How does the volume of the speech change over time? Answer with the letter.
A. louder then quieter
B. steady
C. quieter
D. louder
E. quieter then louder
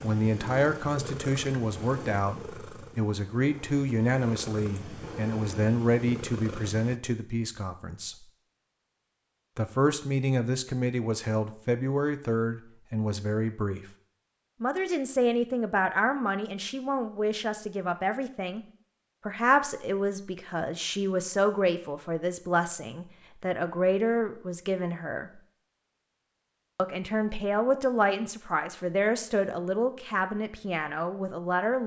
B.